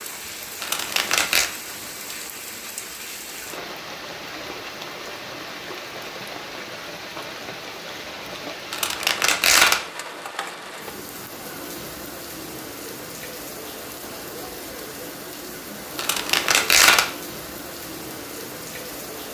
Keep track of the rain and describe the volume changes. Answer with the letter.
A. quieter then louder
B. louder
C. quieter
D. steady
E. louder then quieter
D.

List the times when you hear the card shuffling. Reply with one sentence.
You can hear the card shuffling from 0.6 to 1.5 s, from 8.7 to 9.8 s and from 15.9 to 17.1 s.